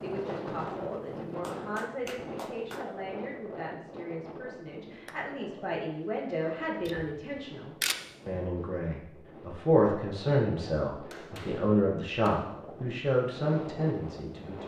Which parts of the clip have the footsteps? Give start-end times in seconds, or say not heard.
not heard.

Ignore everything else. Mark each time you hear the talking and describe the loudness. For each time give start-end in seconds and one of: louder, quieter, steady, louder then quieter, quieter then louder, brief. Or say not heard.
0.0-14.6 louder.